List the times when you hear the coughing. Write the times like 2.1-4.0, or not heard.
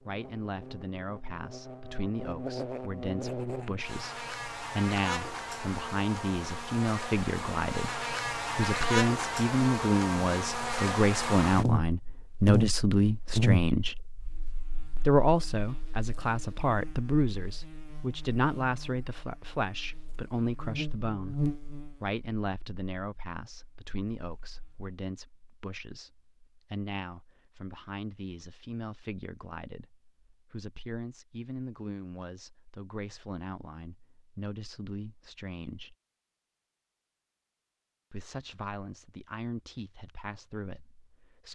not heard.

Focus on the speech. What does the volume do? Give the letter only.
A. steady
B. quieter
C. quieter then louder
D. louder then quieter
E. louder
D.